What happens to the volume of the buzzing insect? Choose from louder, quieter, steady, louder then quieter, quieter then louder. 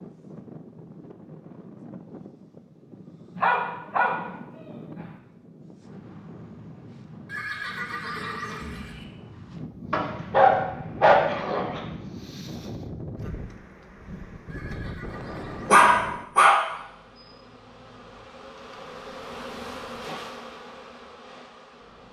louder then quieter.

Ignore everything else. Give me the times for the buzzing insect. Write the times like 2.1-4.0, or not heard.
16.6-22.0.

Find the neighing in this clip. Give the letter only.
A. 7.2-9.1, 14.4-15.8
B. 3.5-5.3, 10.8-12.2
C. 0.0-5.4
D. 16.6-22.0
A.